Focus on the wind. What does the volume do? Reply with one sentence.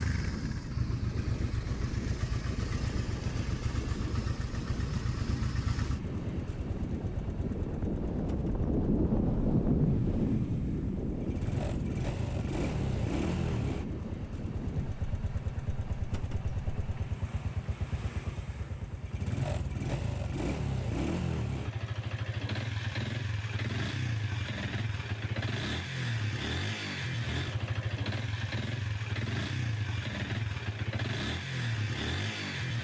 The loudness of the wind goes up, then down.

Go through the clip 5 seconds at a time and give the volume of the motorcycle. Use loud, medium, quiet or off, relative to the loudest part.
loud, medium, loud, loud, loud, loud, loud.